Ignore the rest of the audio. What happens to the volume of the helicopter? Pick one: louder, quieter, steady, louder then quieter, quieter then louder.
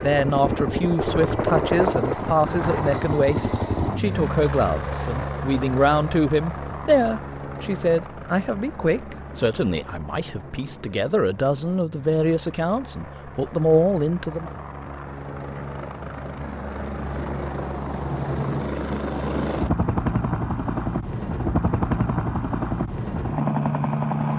quieter then louder.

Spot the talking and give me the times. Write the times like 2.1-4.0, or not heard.
0.0-14.5.